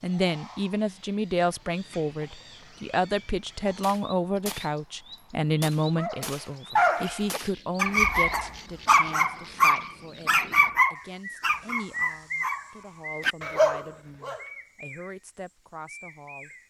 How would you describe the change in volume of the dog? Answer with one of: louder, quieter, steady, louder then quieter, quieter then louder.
quieter then louder.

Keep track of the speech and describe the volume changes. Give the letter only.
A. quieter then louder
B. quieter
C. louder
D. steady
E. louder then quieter
B.